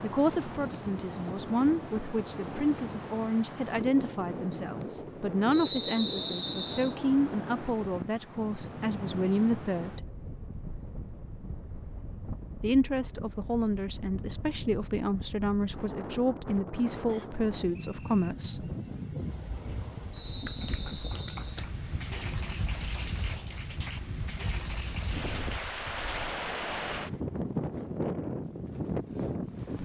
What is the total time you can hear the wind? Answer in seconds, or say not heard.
30 s.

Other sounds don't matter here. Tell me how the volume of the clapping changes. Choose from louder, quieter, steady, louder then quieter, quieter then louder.
steady.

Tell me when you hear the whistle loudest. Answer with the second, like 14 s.
6 s.